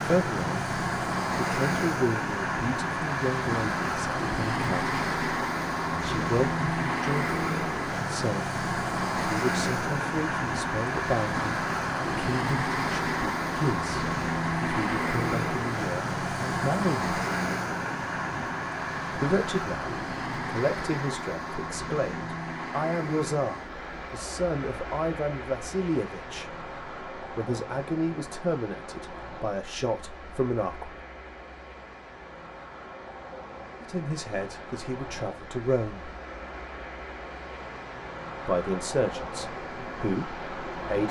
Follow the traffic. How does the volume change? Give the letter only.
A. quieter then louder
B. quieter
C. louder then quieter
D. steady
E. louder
B.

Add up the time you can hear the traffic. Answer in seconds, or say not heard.
41 s.